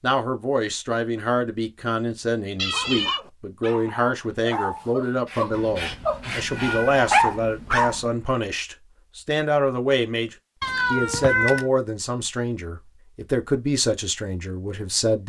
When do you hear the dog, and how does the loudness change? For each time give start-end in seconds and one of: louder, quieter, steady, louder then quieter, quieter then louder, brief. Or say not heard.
2.7-8.0 louder.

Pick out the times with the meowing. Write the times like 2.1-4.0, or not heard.
2.5-3.2, 5.5-8.1, 10.6-11.7.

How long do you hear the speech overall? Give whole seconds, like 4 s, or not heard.
15 s.